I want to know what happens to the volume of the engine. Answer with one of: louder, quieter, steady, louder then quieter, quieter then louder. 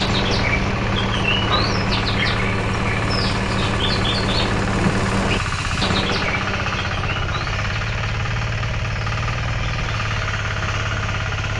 steady.